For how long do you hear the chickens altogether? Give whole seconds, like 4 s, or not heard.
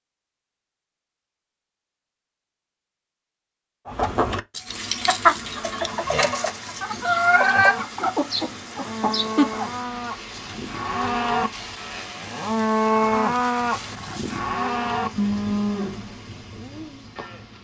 6 s.